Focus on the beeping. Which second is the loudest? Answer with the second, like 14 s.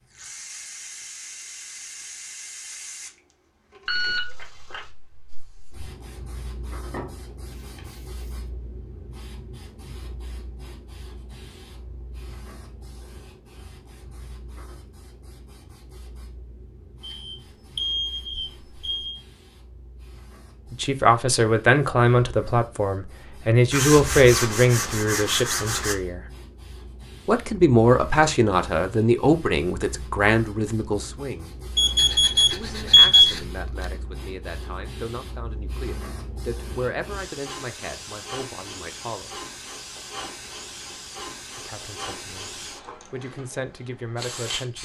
33 s.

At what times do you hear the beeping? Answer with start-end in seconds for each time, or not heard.
3.9-4.8, 17.0-19.2, 31.8-33.2.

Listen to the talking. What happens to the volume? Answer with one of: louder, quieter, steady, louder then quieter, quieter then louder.
quieter.